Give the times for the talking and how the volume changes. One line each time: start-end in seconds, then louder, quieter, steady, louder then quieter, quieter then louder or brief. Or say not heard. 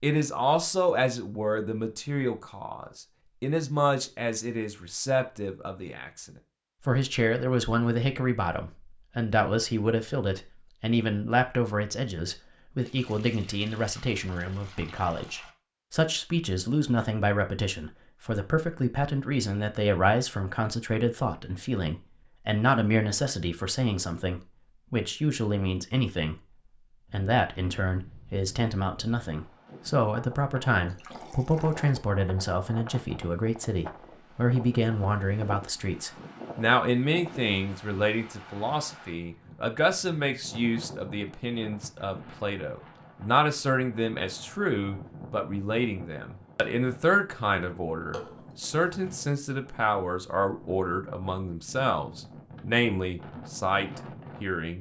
0.0-26.4 steady
27.1-54.7 steady.